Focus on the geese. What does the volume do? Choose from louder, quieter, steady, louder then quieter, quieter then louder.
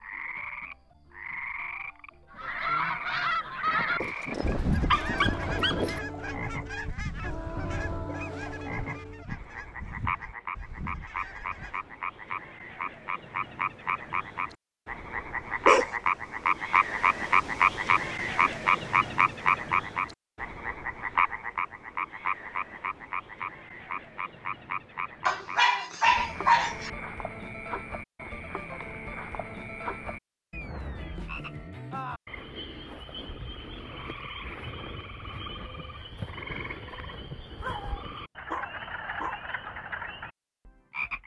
quieter.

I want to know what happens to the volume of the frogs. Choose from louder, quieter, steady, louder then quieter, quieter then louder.
louder then quieter.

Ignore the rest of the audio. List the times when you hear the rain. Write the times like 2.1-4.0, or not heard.
not heard.